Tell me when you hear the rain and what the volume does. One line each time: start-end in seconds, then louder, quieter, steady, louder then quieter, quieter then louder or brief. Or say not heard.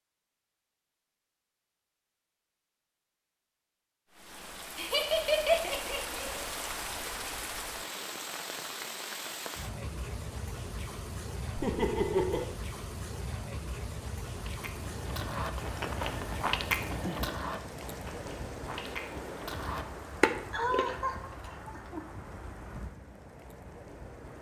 4.1-24.3 quieter.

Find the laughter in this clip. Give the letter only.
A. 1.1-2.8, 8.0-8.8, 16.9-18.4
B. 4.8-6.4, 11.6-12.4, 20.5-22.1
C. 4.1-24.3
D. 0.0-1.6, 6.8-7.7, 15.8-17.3
B.